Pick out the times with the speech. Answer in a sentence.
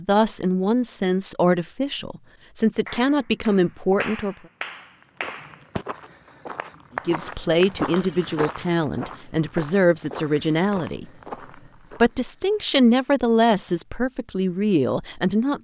You can hear the speech from 0.0 to 4.3 s, from 7.0 to 11.1 s and from 12.0 to 15.5 s.